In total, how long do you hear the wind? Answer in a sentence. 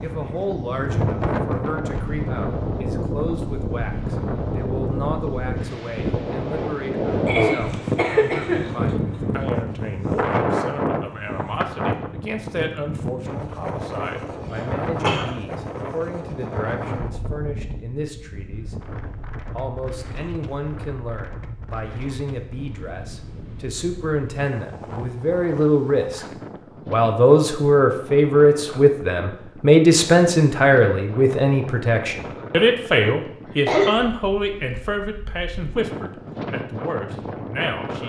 You can hear the wind for 38 seconds altogether.